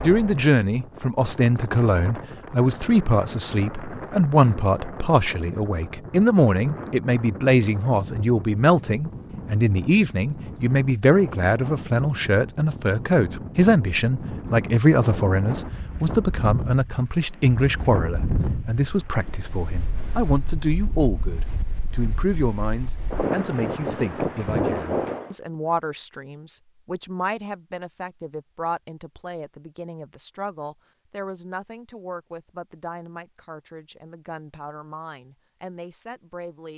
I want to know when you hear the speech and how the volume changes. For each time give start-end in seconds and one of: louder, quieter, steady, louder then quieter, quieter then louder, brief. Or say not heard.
0.0-36.7 quieter.